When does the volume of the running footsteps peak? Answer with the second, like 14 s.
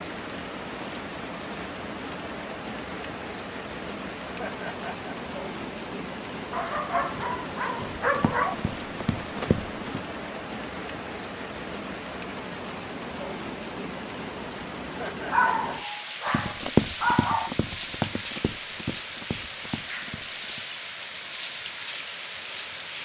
17 s.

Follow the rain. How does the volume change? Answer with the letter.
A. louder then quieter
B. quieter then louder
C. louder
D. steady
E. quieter
D.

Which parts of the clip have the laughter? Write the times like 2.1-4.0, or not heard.
4.2-5.2, 14.8-15.7.